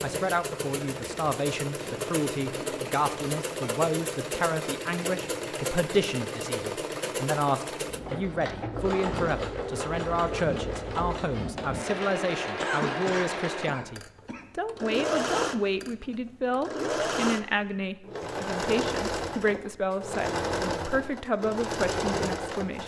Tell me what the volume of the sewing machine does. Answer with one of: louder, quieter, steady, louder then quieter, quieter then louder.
steady.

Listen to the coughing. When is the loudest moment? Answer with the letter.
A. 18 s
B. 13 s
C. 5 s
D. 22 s
B.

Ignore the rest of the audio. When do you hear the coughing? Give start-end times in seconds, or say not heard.
12.6-14.4.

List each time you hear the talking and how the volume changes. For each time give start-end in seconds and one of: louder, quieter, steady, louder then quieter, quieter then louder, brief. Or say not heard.
0.0-22.8 steady.